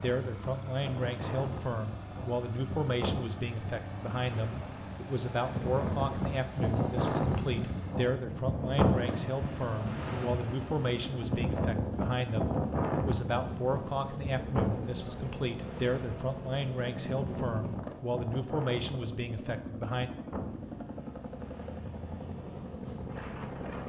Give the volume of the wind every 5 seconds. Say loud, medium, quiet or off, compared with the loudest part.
medium, loud, loud, medium, quiet.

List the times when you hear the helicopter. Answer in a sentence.
The helicopter can be heard from 0.0 to 23.8 s.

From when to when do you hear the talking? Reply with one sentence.
You can hear the talking from 0.0 to 20.1 s.